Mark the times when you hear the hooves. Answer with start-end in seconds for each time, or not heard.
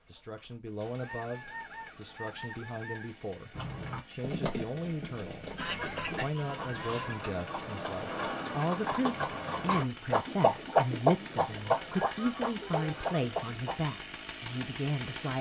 3.5-13.8.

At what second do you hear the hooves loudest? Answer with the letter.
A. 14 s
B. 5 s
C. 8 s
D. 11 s
D.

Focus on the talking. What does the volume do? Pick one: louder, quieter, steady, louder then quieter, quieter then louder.
louder.